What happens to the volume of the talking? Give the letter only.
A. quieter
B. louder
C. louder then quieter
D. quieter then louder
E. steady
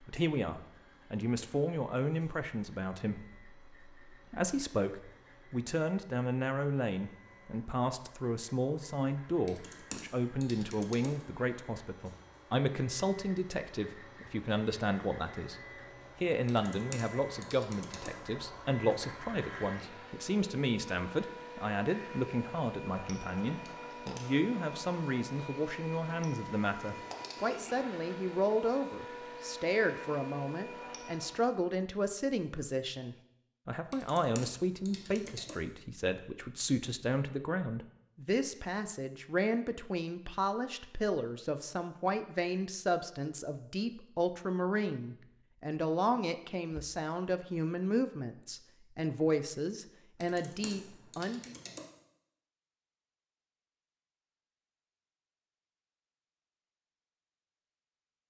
E.